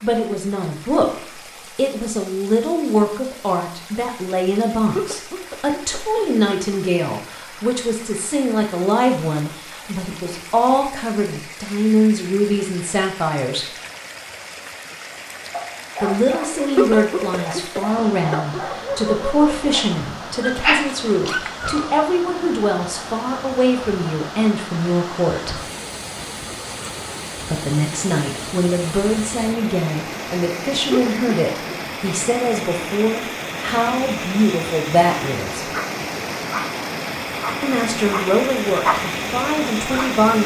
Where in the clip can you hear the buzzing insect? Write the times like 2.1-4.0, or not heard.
not heard.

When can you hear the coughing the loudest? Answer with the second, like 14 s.
17 s.